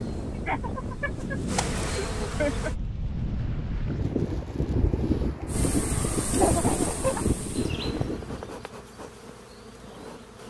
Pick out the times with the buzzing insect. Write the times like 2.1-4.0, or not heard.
0.0-2.8, 5.5-10.4.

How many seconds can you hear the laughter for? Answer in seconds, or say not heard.
3 s.